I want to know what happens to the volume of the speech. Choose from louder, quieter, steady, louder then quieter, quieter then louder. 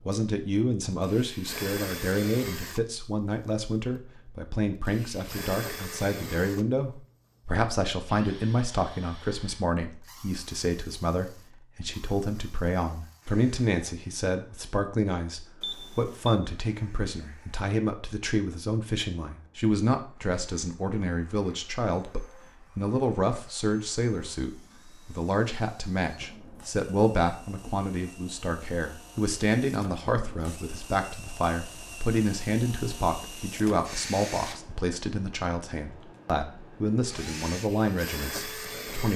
steady.